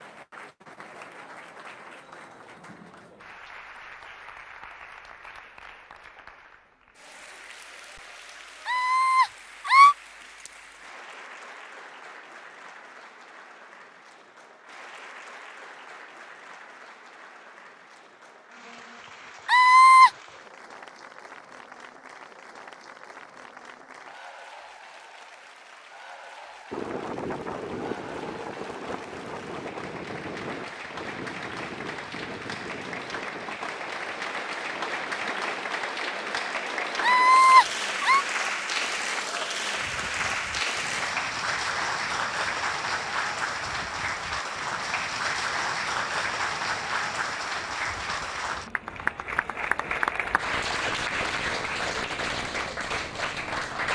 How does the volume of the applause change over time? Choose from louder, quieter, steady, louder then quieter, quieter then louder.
louder.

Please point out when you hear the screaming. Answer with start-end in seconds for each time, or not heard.
8.7-9.9, 19.4-20.1, 37.0-38.2.